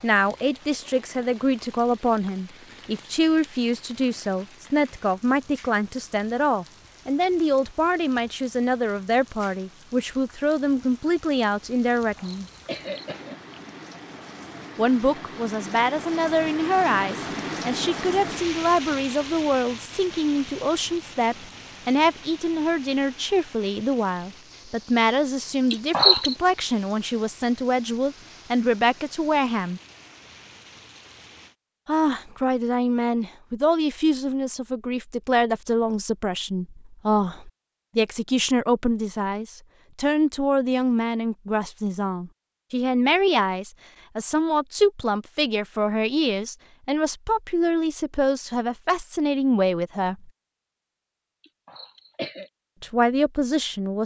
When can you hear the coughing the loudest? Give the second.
26 s.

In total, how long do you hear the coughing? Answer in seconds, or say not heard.
3 s.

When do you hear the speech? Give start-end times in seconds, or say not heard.
0.0-12.4, 14.8-29.8, 31.9-50.3, 52.8-54.0.